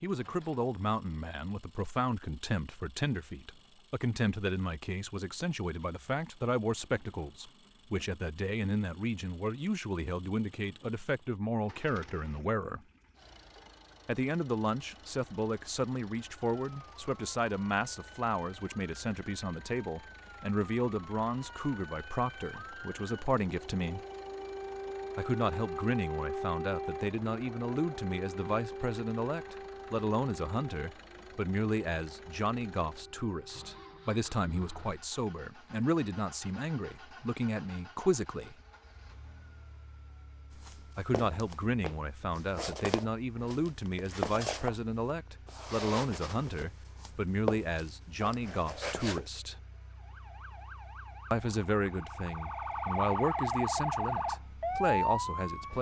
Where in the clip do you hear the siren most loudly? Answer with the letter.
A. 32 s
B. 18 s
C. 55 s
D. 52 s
C.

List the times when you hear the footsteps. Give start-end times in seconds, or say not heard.
40.5-49.3.